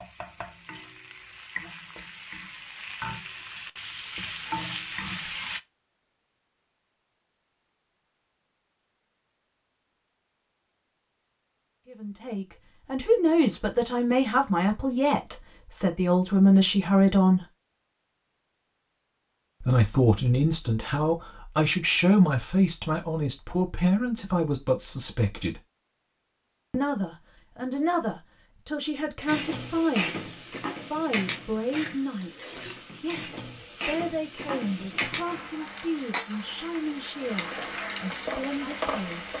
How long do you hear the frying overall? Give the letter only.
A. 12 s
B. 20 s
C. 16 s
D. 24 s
C.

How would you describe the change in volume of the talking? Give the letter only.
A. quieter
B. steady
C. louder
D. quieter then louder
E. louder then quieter
A.